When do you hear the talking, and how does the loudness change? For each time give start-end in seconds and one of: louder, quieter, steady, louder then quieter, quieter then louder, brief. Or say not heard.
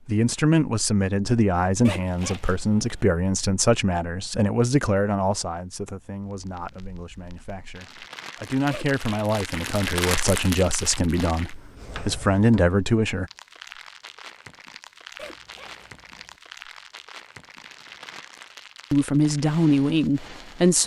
0.1-13.3 quieter then louder
18.9-20.8 brief.